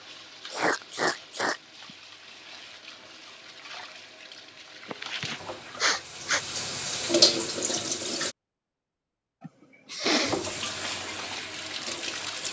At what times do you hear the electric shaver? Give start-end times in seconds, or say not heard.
not heard.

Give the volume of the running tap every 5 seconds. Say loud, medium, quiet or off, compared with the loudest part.
quiet, loud, medium.